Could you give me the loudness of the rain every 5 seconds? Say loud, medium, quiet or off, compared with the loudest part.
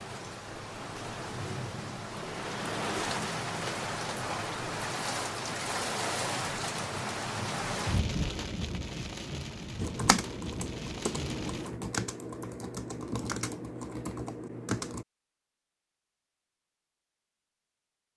loud, loud, medium, off.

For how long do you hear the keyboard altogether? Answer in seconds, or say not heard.
5 s.